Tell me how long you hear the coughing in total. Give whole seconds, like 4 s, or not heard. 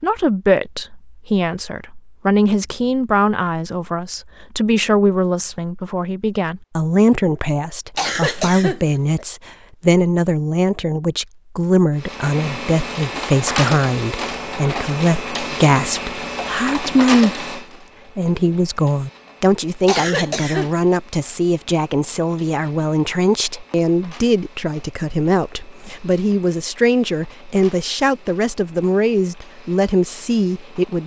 2 s.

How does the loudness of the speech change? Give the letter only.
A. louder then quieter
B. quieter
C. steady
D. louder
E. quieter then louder
C.